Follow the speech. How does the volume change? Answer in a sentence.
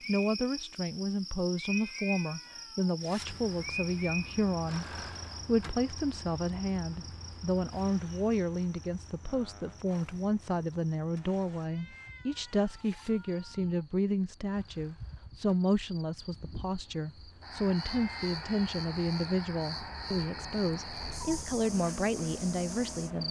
The loudness of the speech stays about the same.